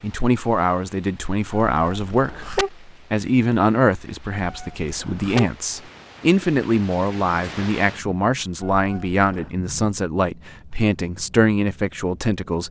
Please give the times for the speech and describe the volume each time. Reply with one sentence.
The speech can be heard from 0.0 to 12.6 s, at a steady volume.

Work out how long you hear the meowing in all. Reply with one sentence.
You can hear the meowing for 3 seconds altogether.